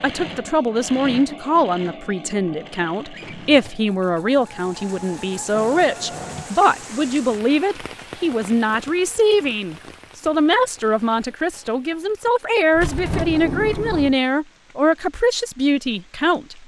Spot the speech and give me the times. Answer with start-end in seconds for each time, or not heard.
0.0-16.6.